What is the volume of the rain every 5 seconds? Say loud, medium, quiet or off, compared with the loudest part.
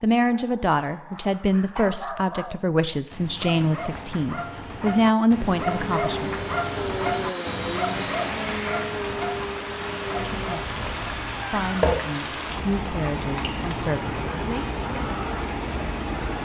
off, medium, loud, loud.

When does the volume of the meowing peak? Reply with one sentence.
The volume of the meowing peaks at 12 seconds.